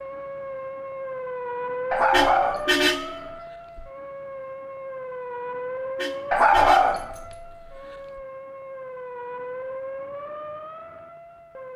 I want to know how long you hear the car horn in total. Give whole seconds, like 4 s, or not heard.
2 s.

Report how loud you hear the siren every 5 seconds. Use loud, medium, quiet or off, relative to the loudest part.
loud, loud, medium.